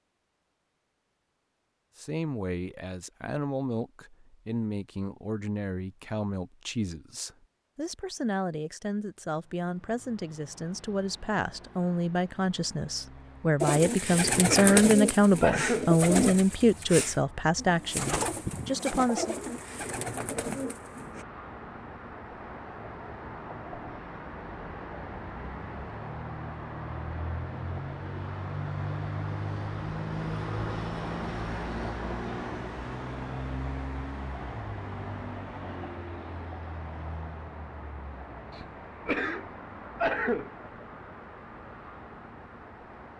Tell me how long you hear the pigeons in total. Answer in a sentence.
The pigeons can be heard for 8 seconds in total.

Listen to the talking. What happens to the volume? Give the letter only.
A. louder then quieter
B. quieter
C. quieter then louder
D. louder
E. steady
D.